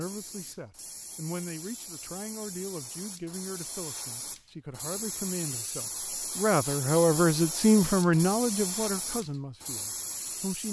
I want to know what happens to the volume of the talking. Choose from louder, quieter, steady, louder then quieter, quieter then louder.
louder then quieter.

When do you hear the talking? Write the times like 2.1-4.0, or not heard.
0.0-10.6.